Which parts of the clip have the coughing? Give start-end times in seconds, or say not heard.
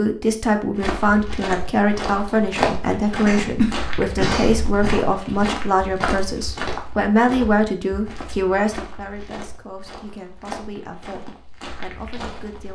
3.2-5.0.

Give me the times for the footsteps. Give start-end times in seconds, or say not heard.
0.8-12.7.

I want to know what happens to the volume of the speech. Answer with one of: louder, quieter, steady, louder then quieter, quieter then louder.
quieter.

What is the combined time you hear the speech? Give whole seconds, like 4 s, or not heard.
13 s.